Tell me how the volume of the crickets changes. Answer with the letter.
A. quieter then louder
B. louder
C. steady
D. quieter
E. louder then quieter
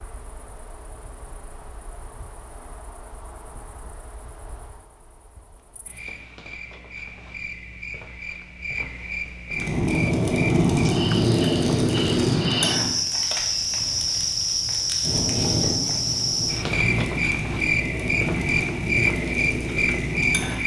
B.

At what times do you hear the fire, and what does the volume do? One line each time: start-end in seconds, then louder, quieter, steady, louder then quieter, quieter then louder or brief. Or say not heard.
9.5-20.6 quieter.